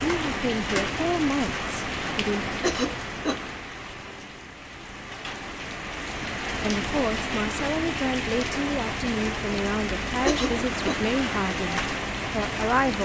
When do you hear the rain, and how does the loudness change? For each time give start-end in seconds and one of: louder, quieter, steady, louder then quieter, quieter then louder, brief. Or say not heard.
0.0-12.9 quieter then louder.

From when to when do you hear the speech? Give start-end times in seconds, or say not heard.
0.0-2.5, 6.6-12.9.